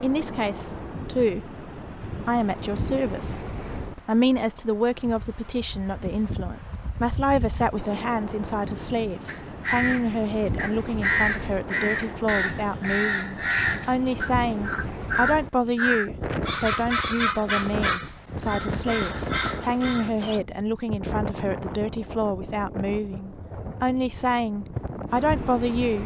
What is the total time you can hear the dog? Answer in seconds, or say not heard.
not heard.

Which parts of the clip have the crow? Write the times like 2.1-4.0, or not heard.
9.2-20.4.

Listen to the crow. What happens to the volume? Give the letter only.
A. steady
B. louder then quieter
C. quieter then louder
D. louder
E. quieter
E.